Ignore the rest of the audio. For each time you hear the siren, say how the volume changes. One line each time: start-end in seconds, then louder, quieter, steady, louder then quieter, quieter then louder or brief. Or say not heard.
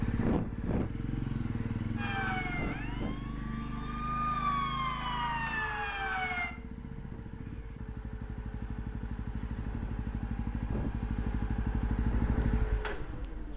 1.9-6.5 quieter then louder.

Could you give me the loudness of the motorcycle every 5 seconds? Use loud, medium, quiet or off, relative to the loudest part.
loud, medium, loud.